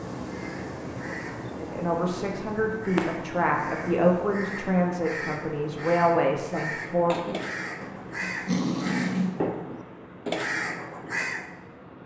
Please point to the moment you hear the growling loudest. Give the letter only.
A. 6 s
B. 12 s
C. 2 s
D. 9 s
D.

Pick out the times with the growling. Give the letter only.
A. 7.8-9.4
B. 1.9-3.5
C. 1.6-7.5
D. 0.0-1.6
A.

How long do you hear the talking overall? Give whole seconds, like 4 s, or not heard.
6 s.